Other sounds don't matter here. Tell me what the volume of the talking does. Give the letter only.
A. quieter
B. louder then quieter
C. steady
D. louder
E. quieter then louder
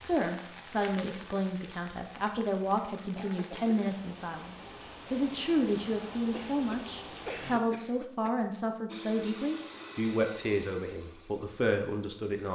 C.